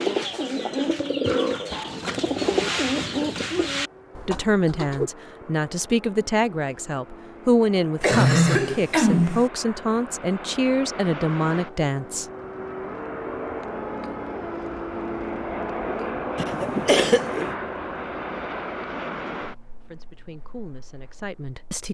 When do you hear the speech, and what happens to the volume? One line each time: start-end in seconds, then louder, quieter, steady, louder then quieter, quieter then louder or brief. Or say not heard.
4.2-12.2 steady
19.9-21.8 brief.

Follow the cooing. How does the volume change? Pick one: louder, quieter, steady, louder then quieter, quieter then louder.
quieter.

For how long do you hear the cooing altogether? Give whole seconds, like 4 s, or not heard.
5 s.